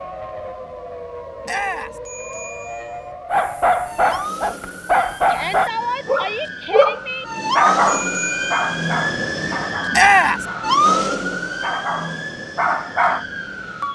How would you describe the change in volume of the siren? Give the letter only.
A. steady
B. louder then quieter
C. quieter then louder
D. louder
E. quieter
D.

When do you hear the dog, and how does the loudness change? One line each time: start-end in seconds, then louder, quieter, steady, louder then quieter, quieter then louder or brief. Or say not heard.
3.3-13.2 quieter then louder.